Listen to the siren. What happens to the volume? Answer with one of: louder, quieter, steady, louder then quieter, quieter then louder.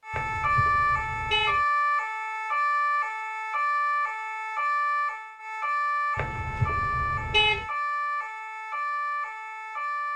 quieter.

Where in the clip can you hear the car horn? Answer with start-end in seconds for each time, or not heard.
0.1-1.6, 6.2-7.7.